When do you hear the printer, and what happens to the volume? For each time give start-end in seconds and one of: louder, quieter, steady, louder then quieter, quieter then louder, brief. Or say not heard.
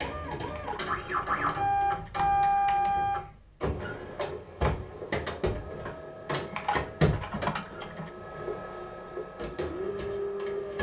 0.0-10.7 quieter.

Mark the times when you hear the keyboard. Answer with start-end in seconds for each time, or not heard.
0.5-3.2, 6.5-8.1.